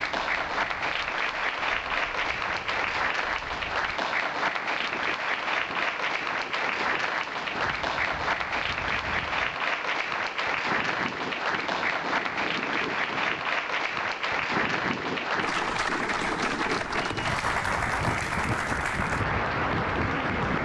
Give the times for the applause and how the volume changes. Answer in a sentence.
The applause can be heard from 0.0 to 20.6 s, at a steady volume.